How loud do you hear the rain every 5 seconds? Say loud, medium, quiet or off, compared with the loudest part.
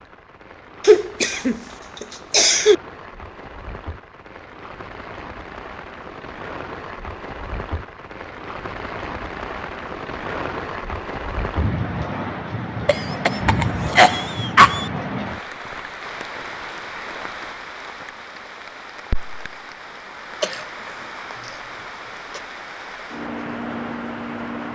quiet, medium, loud, medium, medium.